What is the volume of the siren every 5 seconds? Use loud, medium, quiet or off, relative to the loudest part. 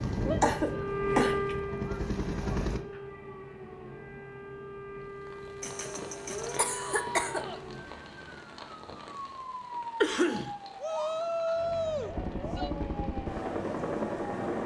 loud, medium, medium.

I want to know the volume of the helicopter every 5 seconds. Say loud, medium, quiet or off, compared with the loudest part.
loud, off, loud.